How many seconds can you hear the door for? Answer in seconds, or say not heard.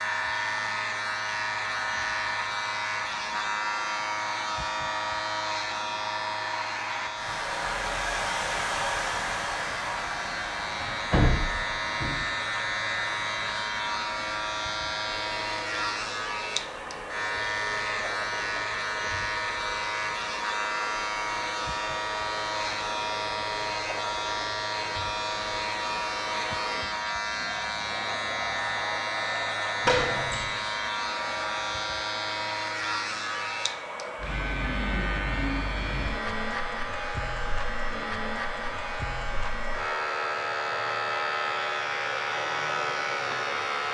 2 s.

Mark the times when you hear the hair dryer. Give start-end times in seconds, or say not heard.
0.0-43.8.